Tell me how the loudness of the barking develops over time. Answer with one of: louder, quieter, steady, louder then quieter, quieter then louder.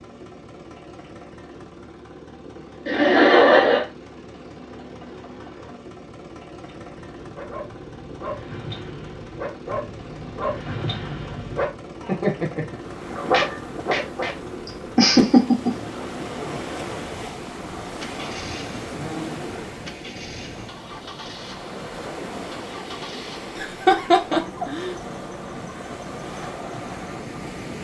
louder.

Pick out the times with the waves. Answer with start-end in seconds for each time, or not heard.
12.7-27.8.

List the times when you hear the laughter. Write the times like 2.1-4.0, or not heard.
2.9-3.9, 14.7-15.8, 23.6-24.9.